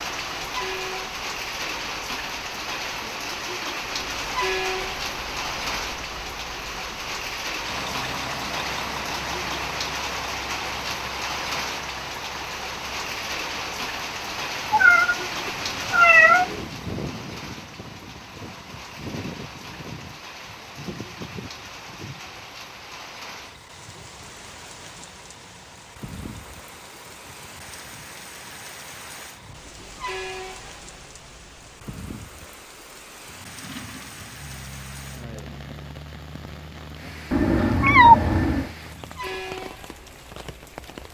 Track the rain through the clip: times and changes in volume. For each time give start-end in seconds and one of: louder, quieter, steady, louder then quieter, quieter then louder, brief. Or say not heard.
0.0-41.1 quieter.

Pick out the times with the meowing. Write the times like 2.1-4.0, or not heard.
14.7-16.6, 37.3-38.7.